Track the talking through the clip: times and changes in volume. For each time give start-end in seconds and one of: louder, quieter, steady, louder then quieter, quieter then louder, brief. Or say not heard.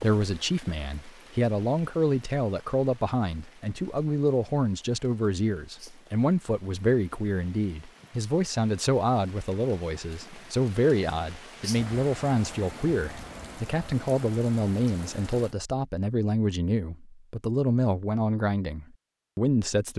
0.0-19.9 steady.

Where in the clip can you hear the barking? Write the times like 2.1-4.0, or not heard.
not heard.